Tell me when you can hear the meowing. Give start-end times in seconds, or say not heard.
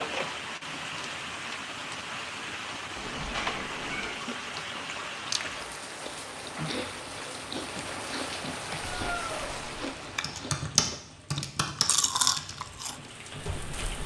3.0-4.2, 8.8-9.6.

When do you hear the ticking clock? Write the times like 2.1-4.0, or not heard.
not heard.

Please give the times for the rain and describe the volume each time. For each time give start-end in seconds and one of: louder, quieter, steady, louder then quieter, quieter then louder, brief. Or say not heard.
0.0-14.0 quieter.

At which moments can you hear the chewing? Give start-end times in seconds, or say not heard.
4.0-12.9.